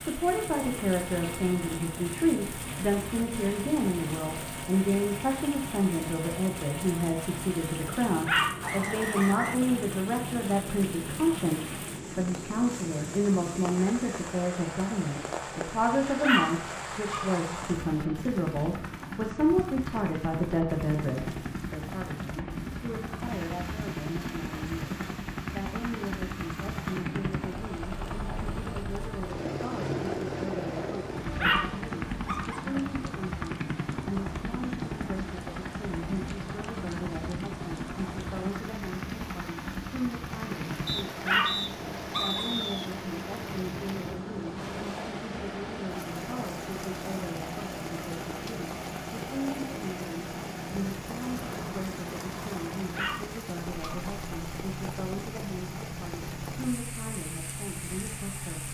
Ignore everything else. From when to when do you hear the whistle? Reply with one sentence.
The whistle can be heard from 8.6 to 9.6 s and from 40.9 to 42.9 s.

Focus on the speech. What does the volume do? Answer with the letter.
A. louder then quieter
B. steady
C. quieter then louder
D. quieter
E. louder
D.